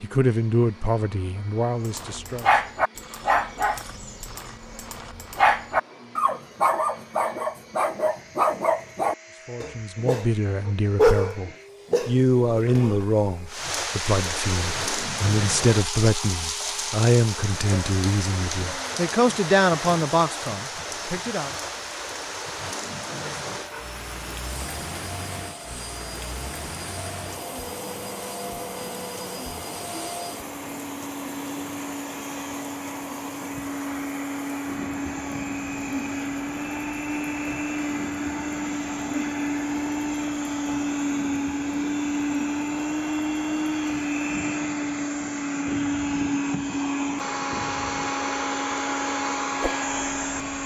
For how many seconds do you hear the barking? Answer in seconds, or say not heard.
11 s.